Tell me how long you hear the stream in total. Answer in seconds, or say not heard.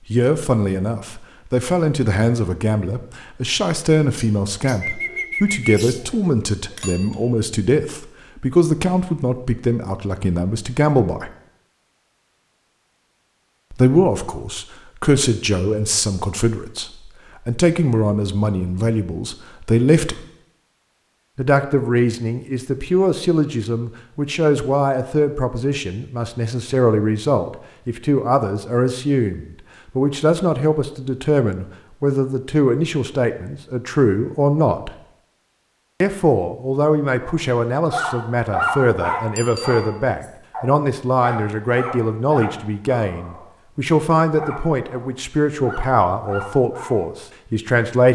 not heard.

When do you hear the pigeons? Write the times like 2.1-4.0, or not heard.
4.2-6.2.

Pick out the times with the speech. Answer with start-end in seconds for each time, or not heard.
0.1-11.3, 13.7-20.2, 21.4-35.0, 36.0-48.0.